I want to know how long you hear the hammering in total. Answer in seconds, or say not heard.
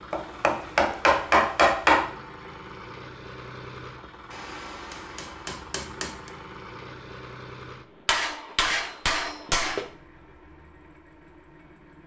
6 s.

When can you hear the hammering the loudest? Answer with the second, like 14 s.
2 s.